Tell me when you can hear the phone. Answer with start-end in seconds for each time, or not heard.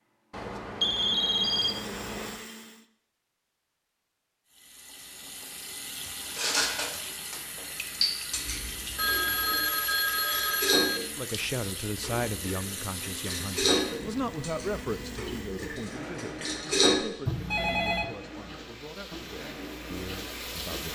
0.3-2.4, 8.9-11.0, 17.2-18.1.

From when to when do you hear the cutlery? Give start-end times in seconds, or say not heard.
6.3-17.1.